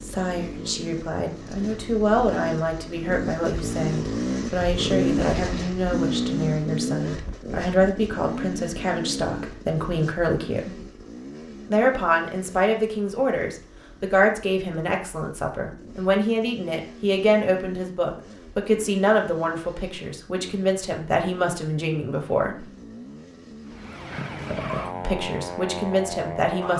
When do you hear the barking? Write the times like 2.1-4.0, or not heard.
not heard.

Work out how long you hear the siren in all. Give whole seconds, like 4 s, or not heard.
3 s.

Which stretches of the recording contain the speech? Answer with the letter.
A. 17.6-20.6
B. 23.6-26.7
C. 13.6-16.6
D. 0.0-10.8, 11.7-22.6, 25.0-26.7
D.